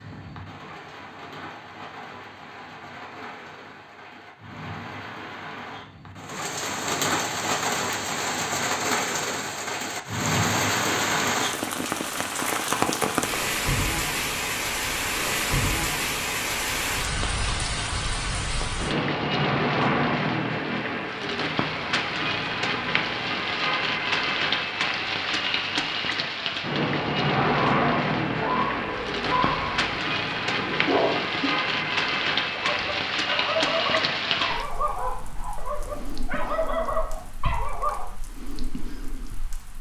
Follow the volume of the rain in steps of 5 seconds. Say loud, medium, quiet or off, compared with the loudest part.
quiet, loud, loud, loud, loud, loud, loud, quiet.